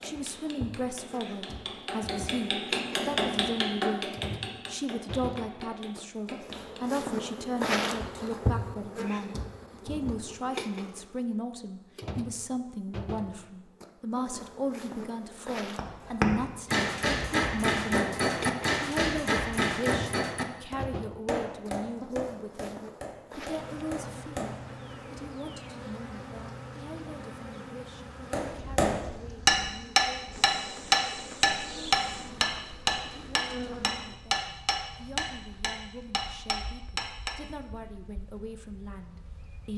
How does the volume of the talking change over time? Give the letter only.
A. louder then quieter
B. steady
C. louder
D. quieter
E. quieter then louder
D.